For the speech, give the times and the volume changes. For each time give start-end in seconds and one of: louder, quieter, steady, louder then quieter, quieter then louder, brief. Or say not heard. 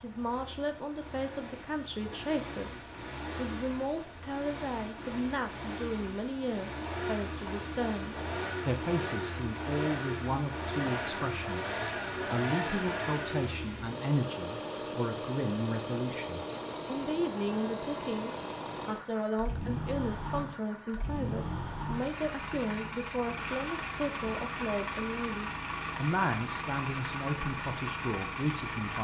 0.0-28.9 steady.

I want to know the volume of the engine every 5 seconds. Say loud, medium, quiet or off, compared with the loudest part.
medium, loud, loud, loud, loud, loud.